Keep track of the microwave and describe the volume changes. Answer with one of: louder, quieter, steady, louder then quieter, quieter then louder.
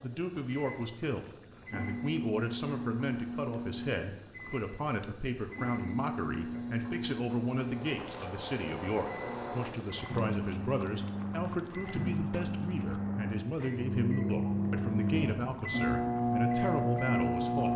louder.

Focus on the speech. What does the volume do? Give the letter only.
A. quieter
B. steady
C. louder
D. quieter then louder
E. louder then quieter
B.